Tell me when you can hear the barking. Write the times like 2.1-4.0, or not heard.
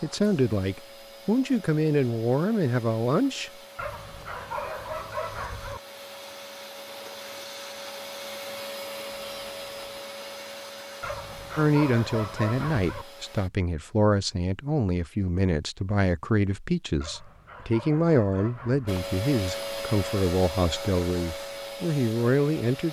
3.8-5.8, 11.0-13.1, 17.0-19.0.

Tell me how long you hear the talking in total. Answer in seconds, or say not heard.
15 s.